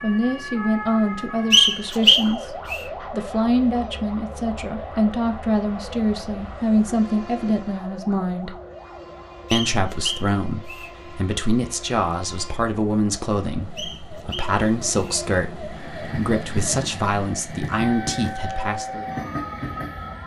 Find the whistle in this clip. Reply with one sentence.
The whistle can be heard from 1.5 to 2.8 s, from 9.5 to 10.9 s and from 13.8 to 15.2 s.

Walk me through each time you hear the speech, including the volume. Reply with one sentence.
You can hear the speech from 0.0 to 8.6 s, at a steady volume; and from 9.5 to 19.1 s, at a steady volume.